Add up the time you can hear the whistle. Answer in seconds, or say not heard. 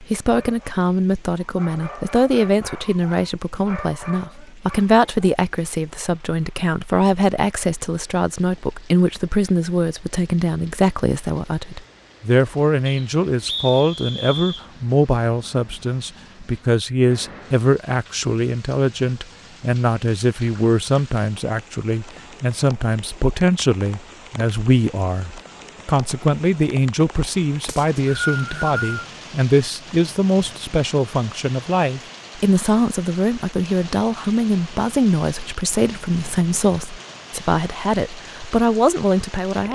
3 s.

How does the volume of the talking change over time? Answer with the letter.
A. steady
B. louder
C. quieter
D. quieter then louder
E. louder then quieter
A.